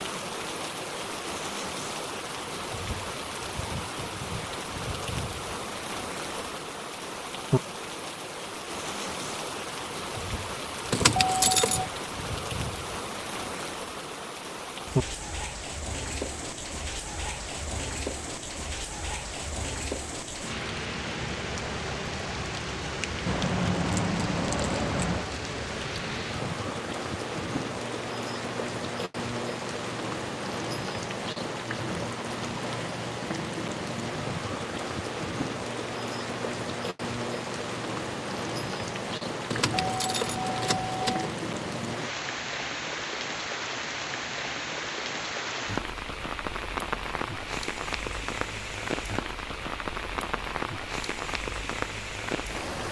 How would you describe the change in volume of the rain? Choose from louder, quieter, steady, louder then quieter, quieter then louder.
steady.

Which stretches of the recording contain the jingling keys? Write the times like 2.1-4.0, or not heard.
10.9-11.8, 23.2-25.2, 39.5-41.3.